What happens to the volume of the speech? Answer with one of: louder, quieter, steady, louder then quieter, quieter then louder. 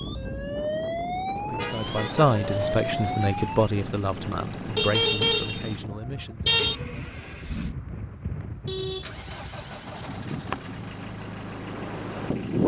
quieter.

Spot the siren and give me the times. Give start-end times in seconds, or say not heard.
0.0-3.7.